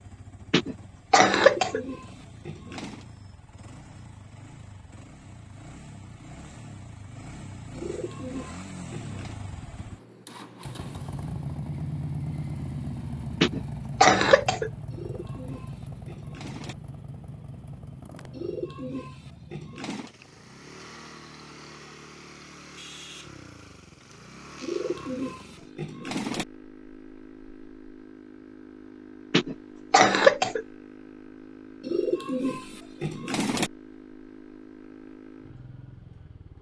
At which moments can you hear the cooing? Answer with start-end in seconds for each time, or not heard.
1.4-3.0, 7.8-9.4, 14.9-16.8, 18.3-20.1, 24.6-26.4, 31.8-33.7.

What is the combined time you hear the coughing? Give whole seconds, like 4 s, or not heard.
4 s.